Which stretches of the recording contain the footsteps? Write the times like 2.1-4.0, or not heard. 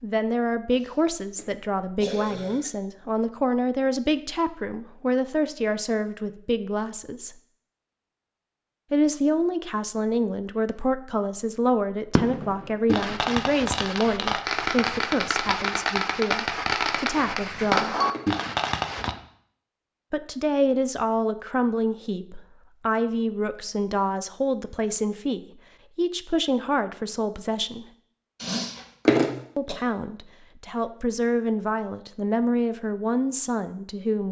not heard.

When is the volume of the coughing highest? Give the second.
29 s.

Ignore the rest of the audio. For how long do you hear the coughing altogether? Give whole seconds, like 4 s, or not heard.
4 s.